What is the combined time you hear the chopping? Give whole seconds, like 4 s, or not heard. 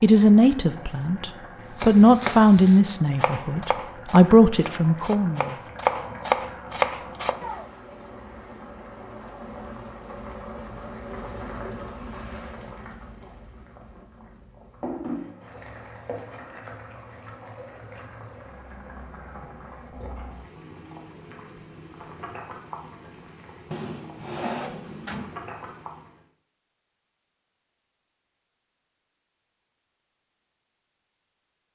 6 s.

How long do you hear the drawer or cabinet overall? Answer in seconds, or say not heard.
2 s.